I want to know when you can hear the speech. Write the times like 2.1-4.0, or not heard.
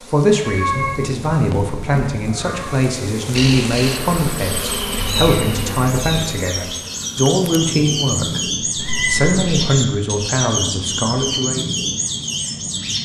0.1-8.4, 9.1-11.7.